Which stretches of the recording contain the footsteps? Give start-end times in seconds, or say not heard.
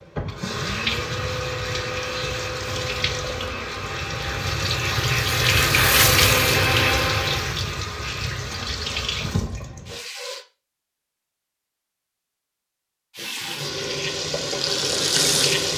not heard.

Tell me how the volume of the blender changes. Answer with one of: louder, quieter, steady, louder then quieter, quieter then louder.
louder.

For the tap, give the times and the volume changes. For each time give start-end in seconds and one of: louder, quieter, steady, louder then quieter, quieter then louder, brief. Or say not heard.
0.0-10.4 louder then quieter
13.2-15.7 brief.